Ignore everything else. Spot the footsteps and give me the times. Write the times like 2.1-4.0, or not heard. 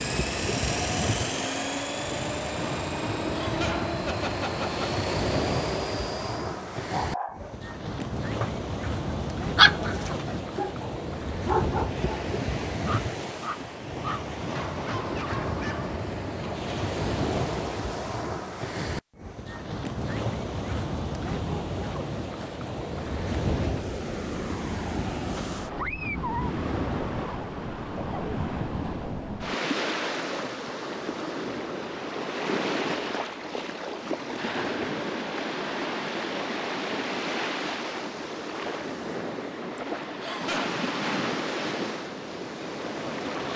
not heard.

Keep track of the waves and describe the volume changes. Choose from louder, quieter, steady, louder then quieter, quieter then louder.
steady.